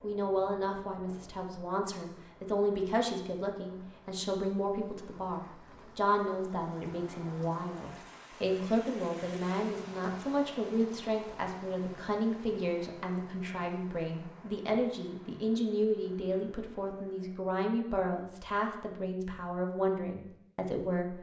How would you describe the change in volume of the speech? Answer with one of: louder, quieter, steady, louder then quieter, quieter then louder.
steady.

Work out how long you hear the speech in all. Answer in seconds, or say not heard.
21 s.